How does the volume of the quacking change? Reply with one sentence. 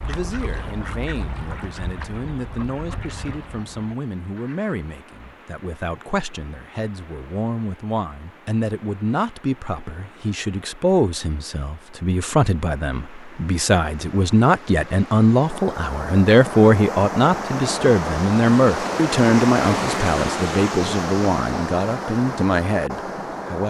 The loudness of the quacking goes down.